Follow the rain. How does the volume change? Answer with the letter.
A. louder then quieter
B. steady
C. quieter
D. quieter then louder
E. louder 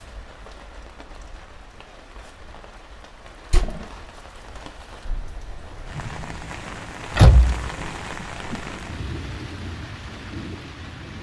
E.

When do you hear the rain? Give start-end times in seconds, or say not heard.
0.0-11.1.